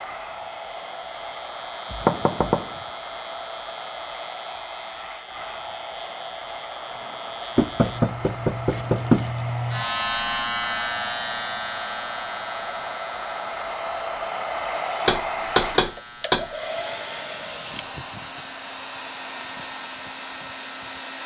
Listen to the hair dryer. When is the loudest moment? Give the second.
15 s.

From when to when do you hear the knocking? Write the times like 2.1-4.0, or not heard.
1.9-2.8, 7.5-9.3, 15.1-16.5.